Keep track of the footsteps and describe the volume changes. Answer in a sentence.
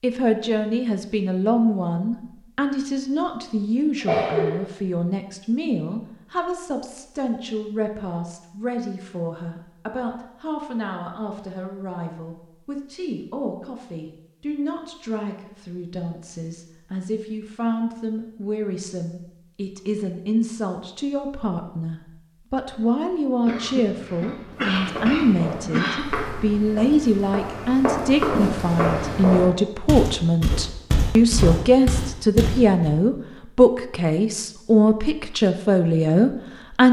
The volume of the footsteps goes up.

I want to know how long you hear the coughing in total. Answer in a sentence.
The coughing can be heard for 3 seconds in total.